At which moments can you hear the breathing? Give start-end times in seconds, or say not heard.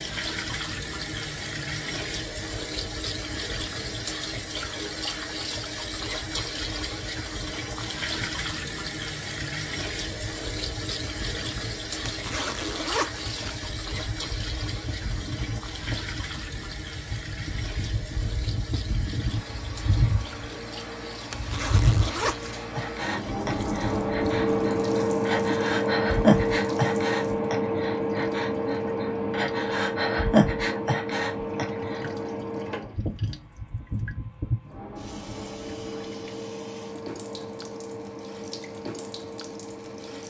22.8-32.0.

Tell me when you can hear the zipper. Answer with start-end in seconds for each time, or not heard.
12.1-13.6, 21.3-22.6.